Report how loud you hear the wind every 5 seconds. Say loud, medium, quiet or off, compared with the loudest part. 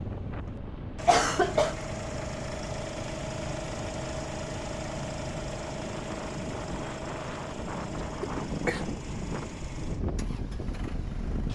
medium, loud, loud.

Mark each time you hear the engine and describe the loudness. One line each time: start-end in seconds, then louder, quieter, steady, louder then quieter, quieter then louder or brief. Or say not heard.
0.0-11.5 quieter.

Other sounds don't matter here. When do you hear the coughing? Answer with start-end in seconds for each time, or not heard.
1.1-1.8, 8.2-8.8.